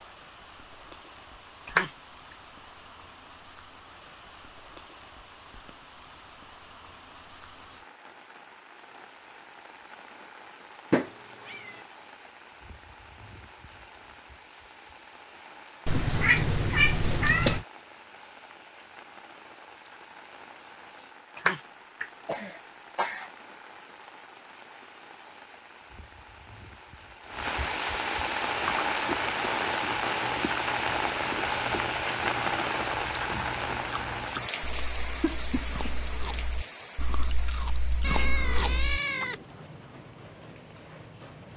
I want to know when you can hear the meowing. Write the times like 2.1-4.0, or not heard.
10.9-11.8, 15.8-17.6, 38.0-39.5.